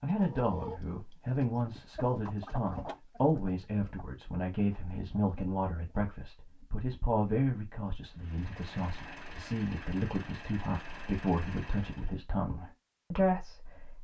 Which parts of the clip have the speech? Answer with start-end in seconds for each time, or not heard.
0.0-14.0.